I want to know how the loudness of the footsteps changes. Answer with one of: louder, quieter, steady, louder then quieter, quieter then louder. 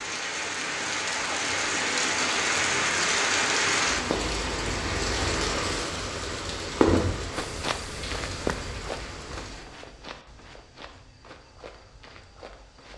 quieter.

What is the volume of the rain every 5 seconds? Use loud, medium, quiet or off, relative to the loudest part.
loud, loud, off.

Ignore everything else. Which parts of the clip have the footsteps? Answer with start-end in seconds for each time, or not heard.
7.3-12.9.